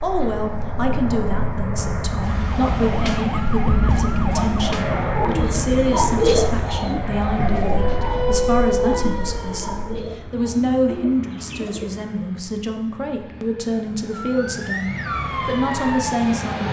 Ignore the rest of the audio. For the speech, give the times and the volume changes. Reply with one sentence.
The speech can be heard from 0.0 to 16.6 s, at a steady volume.